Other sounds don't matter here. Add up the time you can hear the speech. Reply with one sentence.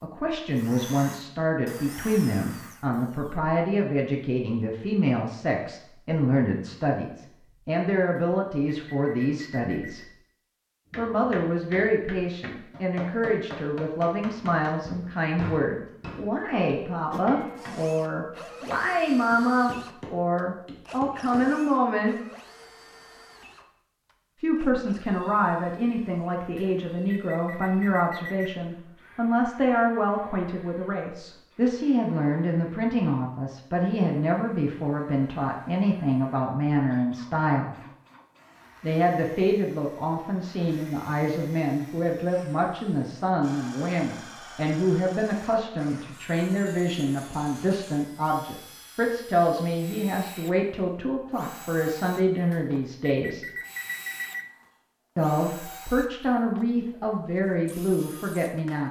You can hear the speech for 53 seconds altogether.